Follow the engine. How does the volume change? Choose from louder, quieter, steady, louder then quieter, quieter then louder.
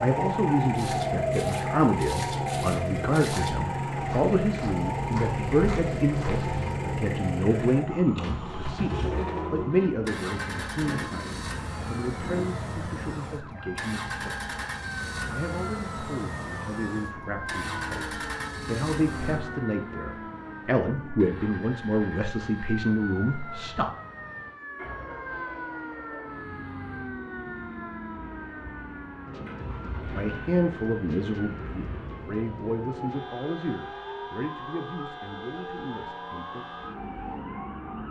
quieter.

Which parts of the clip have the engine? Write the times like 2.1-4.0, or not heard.
0.0-38.0.